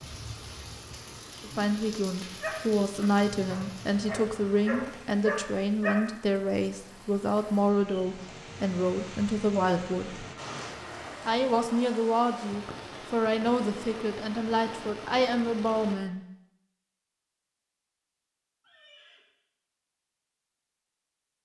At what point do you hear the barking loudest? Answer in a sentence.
The loudest moment of the barking is at 6 seconds.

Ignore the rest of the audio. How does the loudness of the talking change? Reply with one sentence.
The volume of the talking stays about the same.